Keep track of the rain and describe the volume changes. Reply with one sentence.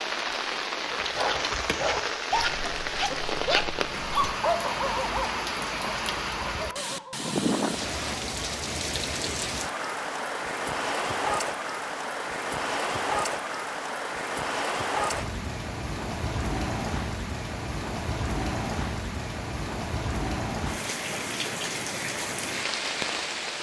The volume of the rain stays about the same.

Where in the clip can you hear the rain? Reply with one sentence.
The rain can be heard from 0.0 to 23.5 s.